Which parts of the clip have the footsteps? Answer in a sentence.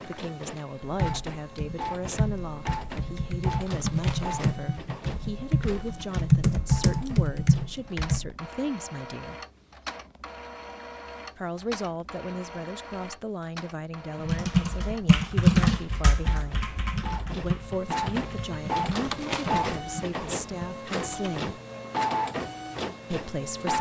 You can't hear the footsteps here.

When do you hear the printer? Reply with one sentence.
You can hear the printer from 0.0 to 23.7 s.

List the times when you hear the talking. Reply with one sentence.
You can hear the talking from 0.1 to 9.3 s, from 11.3 to 16.6 s, from 17.3 to 21.6 s and from 23.1 to 23.7 s.